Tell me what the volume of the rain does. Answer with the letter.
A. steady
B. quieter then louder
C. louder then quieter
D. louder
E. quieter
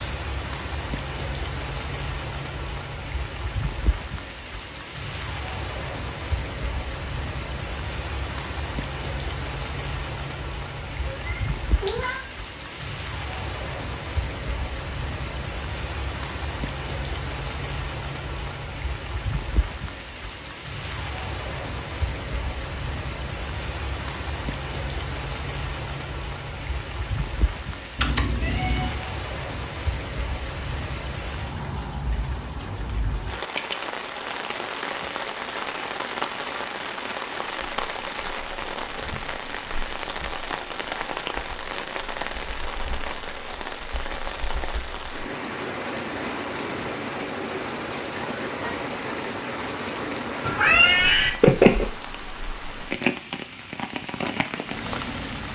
A.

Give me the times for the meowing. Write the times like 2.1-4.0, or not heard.
11.1-12.2, 28.0-28.9, 50.4-51.9.